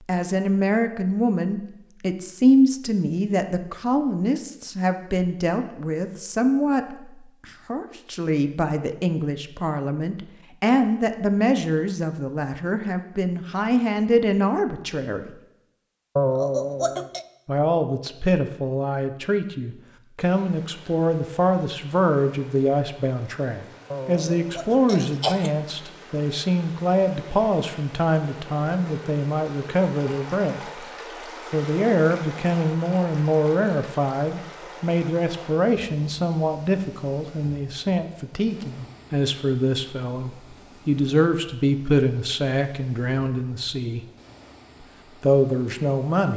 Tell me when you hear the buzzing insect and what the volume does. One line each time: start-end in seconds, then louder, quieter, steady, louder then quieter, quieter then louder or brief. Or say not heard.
not heard.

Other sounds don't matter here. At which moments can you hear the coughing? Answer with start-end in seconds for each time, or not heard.
16.1-17.2, 23.9-25.5.